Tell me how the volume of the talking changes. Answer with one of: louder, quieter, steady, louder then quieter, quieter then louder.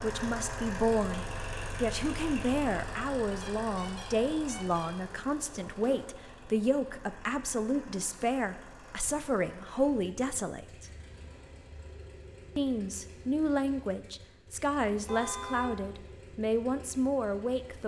steady.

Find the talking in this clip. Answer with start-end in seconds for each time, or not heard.
0.0-10.9, 12.6-17.8.